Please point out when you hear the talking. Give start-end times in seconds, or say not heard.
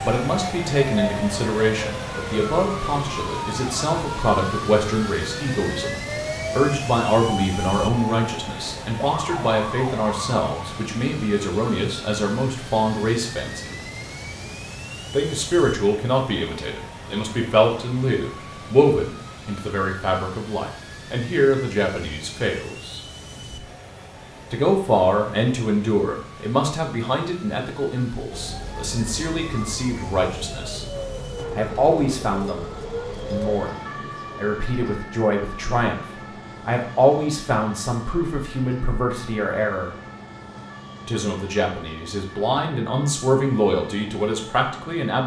0.0-13.8, 15.1-23.0, 24.5-30.9, 31.6-40.0, 41.0-45.2.